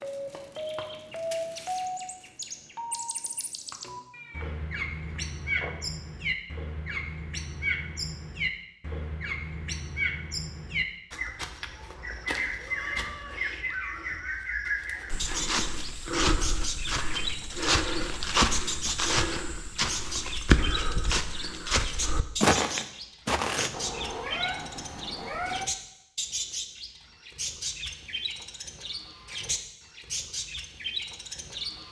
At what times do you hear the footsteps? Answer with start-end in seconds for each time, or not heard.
15.1-23.8.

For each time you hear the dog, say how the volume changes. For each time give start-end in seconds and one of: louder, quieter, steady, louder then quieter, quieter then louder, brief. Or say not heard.
not heard.